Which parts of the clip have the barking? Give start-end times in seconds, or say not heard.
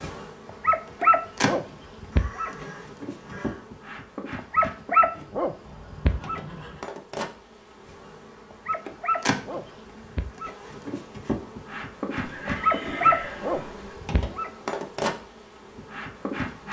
0.5-2.5, 4.3-6.4, 8.5-10.6, 12.4-14.5.